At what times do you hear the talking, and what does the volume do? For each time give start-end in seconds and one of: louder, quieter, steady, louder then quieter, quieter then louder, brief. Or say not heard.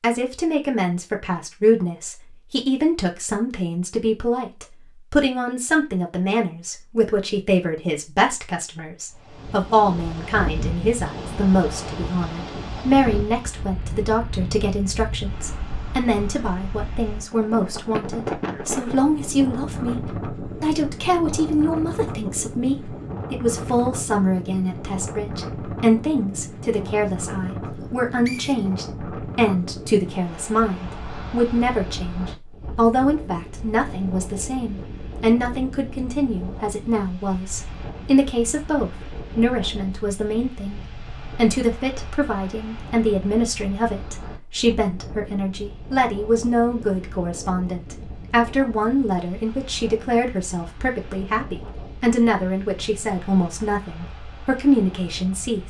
0.0-55.6 steady.